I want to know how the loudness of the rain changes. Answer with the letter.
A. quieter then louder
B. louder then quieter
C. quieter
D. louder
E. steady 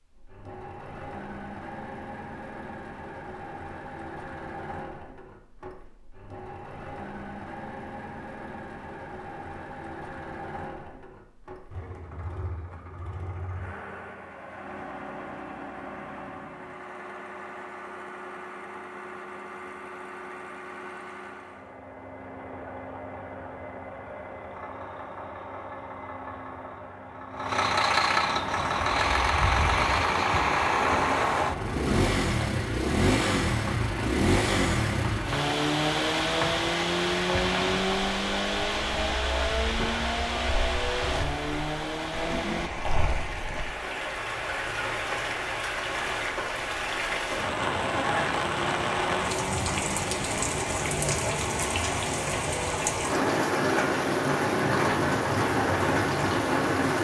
D.